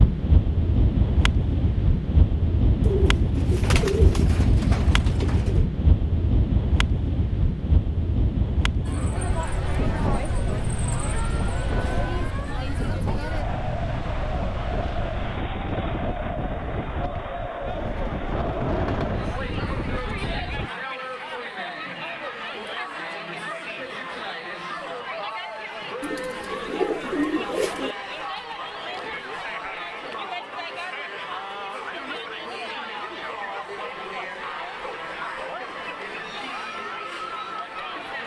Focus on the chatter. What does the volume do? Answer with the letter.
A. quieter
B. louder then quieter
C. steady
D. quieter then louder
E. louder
C.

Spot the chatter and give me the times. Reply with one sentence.
The chatter can be heard from 8.8 to 38.2 s.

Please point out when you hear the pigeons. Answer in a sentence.
The pigeons can be heard from 2.8 to 5.7 s, from 17.6 to 19.2 s and from 26.0 to 27.9 s.